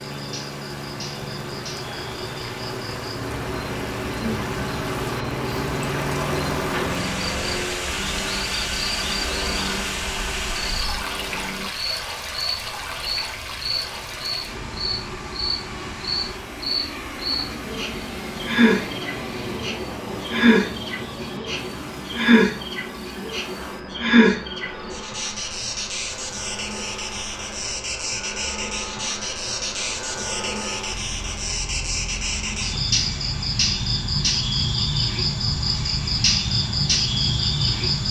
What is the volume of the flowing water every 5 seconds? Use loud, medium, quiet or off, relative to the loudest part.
medium, loud, loud, medium, quiet, quiet, quiet, quiet.